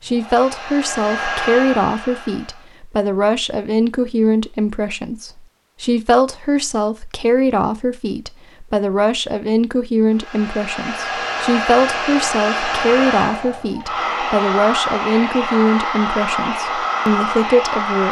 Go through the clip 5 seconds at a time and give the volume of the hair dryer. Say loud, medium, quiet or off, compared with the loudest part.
medium, off, loud, loud.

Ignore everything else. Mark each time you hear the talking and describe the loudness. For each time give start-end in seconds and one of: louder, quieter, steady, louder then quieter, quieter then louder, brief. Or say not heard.
0.0-18.0 steady.